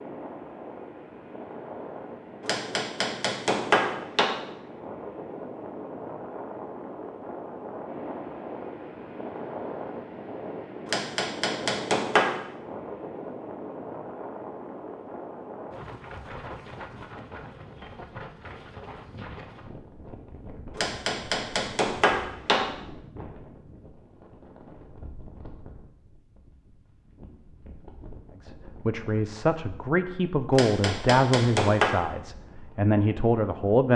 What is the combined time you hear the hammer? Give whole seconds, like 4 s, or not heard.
7 s.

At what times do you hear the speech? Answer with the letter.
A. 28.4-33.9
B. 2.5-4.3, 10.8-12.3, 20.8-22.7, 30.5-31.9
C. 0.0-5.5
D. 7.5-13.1
A.